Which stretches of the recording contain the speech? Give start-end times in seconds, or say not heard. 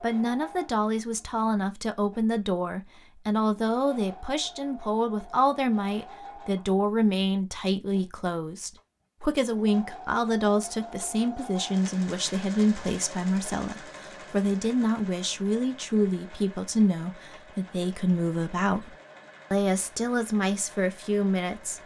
0.0-21.8.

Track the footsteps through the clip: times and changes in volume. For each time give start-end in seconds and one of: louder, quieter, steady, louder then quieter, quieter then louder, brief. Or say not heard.
not heard.